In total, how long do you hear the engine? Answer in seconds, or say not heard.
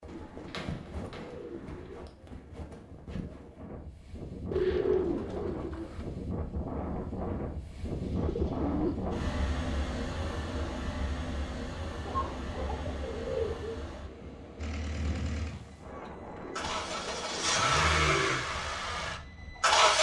5 s.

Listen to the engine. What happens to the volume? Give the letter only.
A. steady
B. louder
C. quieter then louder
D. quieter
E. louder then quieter
E.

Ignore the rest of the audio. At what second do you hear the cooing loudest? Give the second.
5 s.